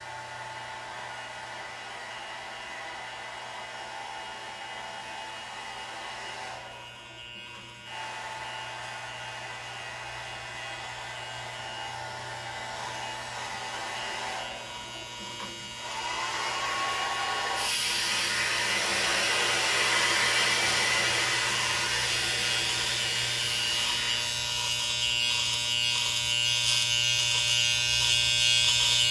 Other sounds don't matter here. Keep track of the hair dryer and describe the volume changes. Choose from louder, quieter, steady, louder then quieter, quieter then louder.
louder.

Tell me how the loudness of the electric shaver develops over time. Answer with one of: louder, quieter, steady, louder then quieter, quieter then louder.
louder.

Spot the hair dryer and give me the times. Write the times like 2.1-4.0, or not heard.
0.0-24.6.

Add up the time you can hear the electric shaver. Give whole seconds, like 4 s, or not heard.
29 s.